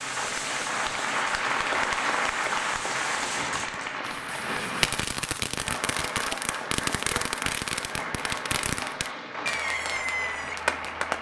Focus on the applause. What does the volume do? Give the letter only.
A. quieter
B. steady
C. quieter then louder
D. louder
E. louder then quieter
A.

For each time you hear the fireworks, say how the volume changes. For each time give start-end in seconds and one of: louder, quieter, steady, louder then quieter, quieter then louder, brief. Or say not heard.
0.0-11.1 louder.